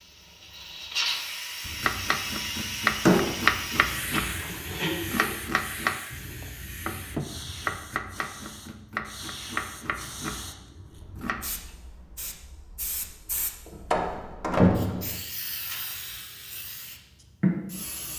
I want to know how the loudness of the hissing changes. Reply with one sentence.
The loudness of the hissing goes down, then up.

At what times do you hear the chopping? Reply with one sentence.
The chopping can be heard from 1.6 to 11.4 s.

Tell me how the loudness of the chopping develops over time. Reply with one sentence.
The loudness of the chopping goes down.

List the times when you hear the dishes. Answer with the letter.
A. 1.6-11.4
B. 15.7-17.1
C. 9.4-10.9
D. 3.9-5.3
D.